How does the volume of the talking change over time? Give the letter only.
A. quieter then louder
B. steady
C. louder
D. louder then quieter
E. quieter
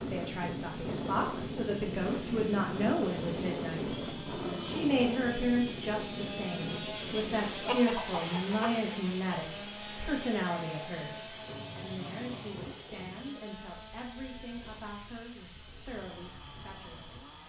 E.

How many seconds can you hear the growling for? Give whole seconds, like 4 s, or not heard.
3 s.